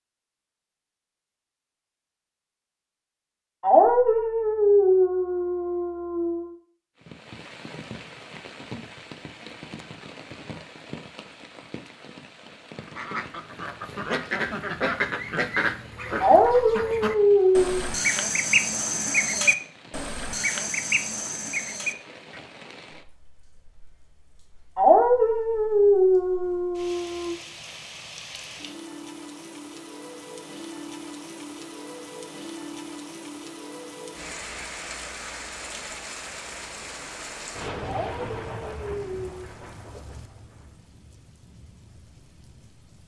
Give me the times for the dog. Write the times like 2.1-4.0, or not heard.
3.6-6.5, 16.2-17.9, 24.8-27.4, 37.9-39.4.